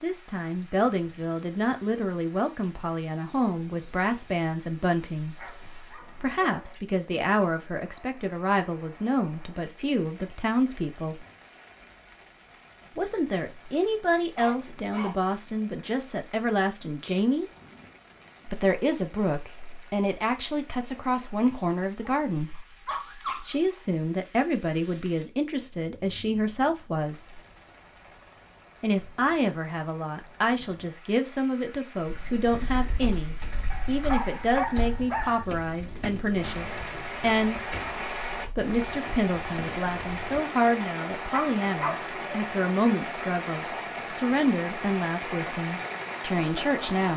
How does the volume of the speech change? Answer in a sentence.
The loudness of the speech stays about the same.